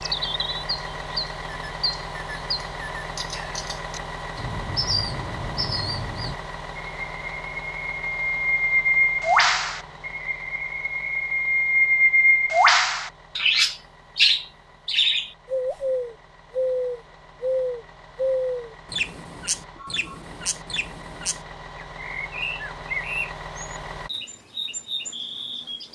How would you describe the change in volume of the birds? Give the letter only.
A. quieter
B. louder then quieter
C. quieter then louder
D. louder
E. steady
B.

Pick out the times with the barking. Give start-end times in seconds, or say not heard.
not heard.